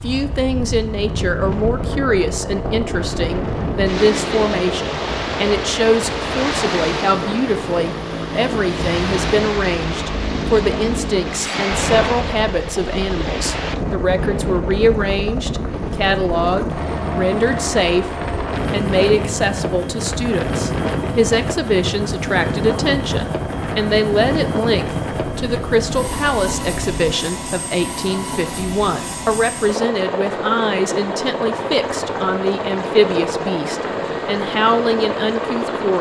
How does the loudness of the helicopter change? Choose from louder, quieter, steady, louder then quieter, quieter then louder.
steady.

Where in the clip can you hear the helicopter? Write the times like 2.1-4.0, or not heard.
0.0-35.9.